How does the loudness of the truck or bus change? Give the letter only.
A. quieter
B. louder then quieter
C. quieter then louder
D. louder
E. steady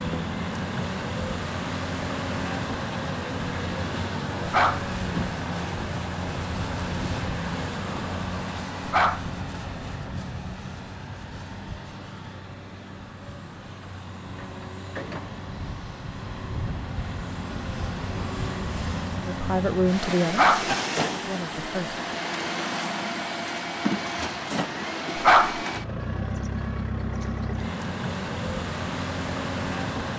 C.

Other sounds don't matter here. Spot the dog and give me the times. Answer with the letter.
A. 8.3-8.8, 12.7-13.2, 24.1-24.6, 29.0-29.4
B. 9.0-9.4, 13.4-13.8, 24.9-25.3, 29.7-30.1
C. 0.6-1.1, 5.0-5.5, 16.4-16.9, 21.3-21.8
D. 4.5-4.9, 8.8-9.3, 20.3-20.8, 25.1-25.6
D.